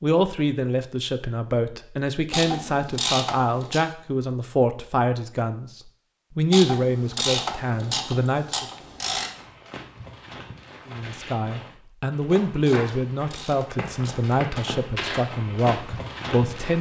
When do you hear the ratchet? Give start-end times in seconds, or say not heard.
2.3-3.9, 6.5-9.3, 12.7-14.2.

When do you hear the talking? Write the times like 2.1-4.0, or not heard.
0.0-8.7, 10.9-16.7.